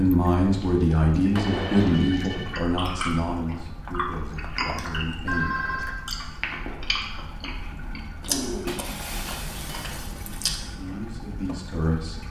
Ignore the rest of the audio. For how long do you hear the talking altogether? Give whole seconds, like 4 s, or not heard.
7 s.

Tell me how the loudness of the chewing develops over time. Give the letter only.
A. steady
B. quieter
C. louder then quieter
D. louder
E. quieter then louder
A.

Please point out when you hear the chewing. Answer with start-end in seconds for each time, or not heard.
2.2-11.0.